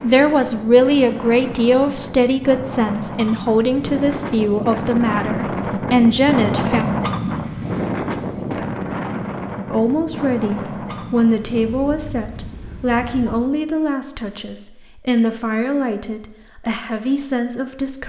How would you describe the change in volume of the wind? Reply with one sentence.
The loudness of the wind goes up, then down.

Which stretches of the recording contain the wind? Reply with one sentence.
The wind can be heard from 0.0 to 13.4 s.